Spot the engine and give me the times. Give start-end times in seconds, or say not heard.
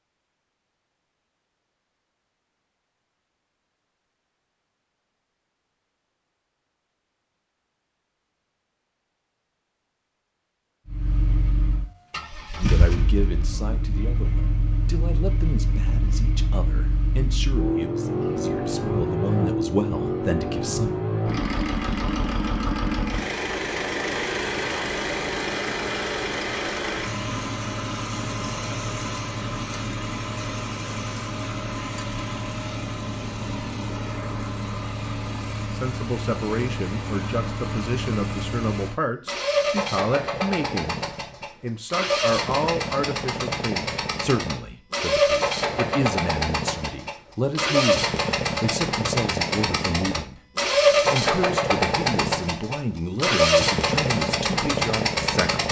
10.8-55.6.